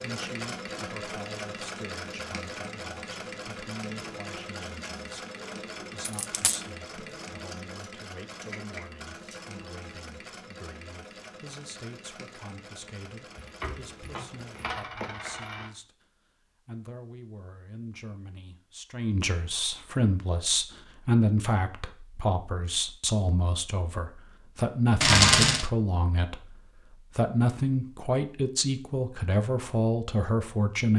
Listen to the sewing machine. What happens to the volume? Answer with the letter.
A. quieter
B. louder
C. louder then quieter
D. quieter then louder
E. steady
A.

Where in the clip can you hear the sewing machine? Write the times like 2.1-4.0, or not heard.
0.0-14.7.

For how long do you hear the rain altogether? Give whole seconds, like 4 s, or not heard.
not heard.